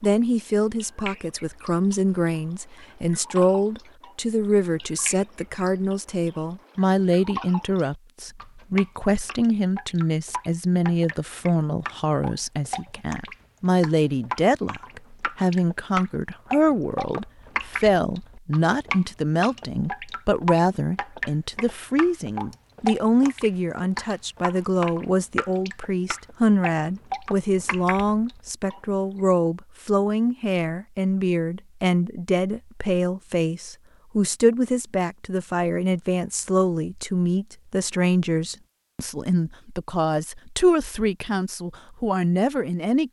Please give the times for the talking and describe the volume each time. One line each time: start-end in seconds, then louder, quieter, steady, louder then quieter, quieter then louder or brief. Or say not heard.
0.0-43.0 steady.